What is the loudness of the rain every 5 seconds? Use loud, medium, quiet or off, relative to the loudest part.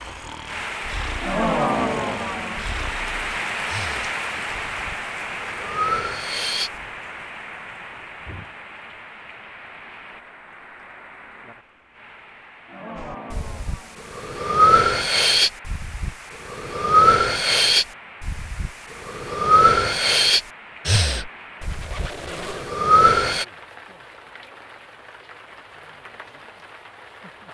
loud, medium, quiet, quiet, quiet, quiet.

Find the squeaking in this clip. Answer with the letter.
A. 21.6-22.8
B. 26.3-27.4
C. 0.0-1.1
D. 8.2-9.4
A.